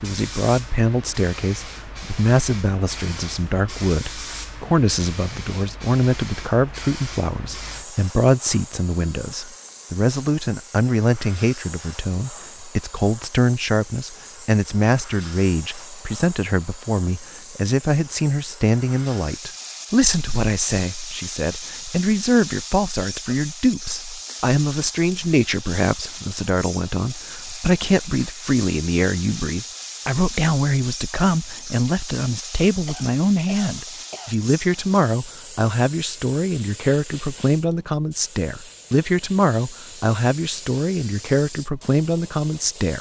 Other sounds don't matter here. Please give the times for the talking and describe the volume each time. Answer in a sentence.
You can hear the talking from 0.0 to 42.9 s, at a steady volume.